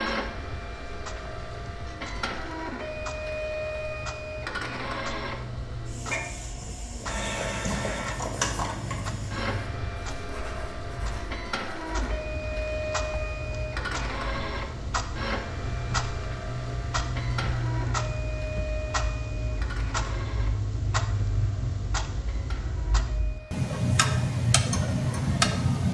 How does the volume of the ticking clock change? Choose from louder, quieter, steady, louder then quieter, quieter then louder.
louder.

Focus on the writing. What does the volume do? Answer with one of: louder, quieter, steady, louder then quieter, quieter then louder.
quieter.